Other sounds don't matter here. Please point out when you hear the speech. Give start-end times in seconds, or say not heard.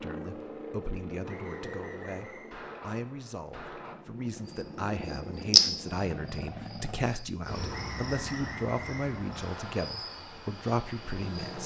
0.0-11.6.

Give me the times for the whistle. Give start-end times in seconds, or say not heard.
1.2-2.5, 7.7-9.6.